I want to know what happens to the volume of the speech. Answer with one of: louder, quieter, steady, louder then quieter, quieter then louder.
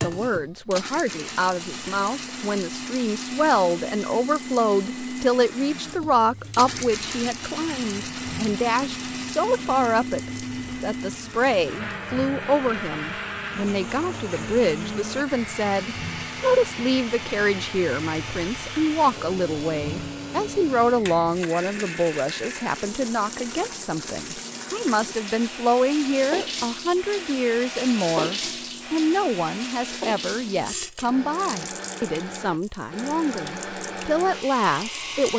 steady.